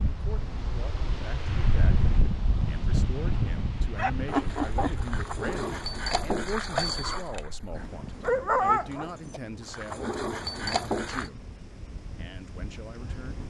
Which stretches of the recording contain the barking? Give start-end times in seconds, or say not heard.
4.0-11.3.